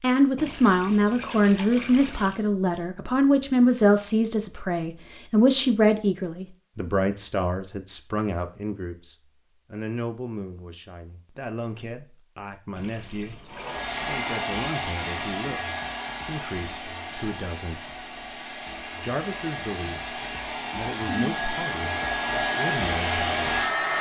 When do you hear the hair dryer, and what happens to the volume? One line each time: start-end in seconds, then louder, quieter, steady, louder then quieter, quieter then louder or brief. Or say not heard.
13.5-23.9 quieter then louder.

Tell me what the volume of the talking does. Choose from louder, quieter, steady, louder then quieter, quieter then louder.
quieter.